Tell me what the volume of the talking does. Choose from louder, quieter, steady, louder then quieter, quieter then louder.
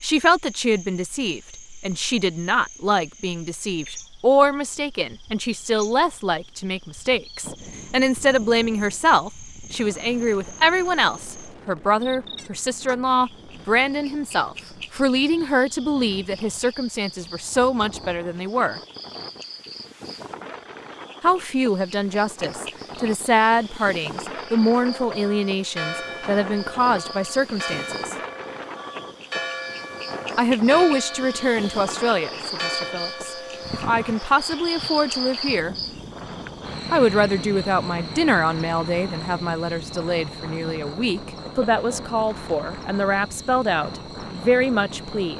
steady.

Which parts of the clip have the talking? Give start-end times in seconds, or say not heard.
0.0-18.8, 21.2-28.1, 30.4-35.8, 36.9-45.3.